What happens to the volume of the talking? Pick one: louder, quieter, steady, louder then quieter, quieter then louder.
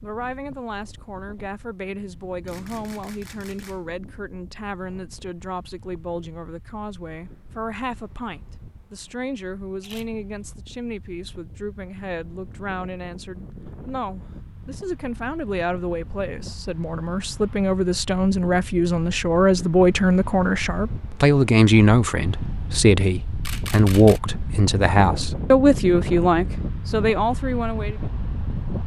louder.